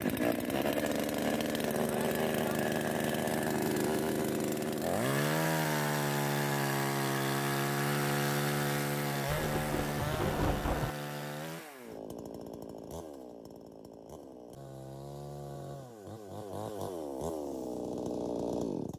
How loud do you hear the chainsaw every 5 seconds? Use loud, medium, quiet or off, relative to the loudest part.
loud, loud, medium, medium.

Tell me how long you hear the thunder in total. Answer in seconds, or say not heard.
2 s.